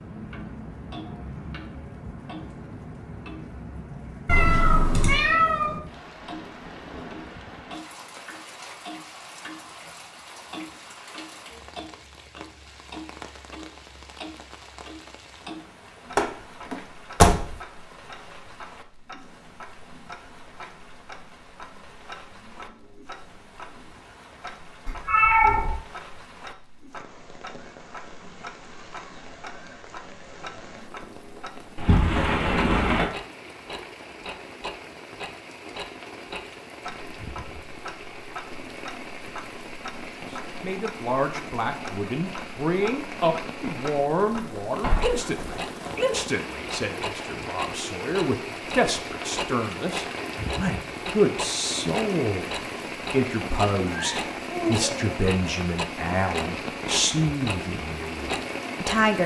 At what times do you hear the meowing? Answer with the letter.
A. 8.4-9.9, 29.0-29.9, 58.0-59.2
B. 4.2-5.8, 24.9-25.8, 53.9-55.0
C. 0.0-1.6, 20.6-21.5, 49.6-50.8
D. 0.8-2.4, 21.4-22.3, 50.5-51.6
B.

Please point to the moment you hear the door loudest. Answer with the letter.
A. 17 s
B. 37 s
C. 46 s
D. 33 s
A.